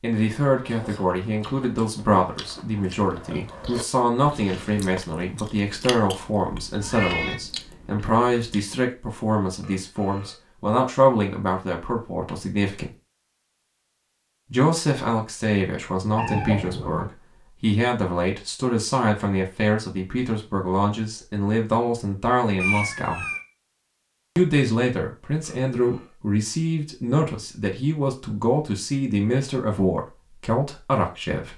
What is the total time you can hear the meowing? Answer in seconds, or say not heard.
2 s.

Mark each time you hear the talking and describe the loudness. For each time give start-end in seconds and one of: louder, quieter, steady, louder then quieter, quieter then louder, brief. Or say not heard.
0.0-12.9 steady
14.5-23.2 steady
24.4-31.5 steady.